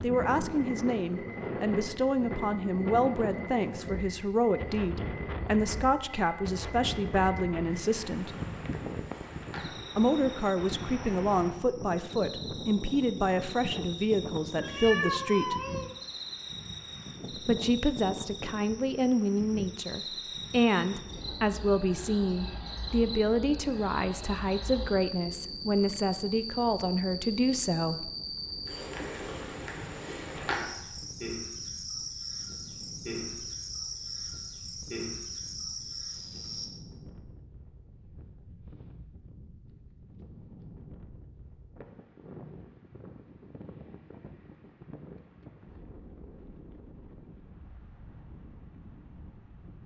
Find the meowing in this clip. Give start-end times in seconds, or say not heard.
14.6-15.9.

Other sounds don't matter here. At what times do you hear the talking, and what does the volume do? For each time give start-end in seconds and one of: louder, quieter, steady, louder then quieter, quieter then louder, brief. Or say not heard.
0.0-8.3 steady
9.9-15.6 steady
17.4-28.1 steady.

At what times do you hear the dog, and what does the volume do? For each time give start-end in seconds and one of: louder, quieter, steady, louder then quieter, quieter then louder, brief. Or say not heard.
not heard.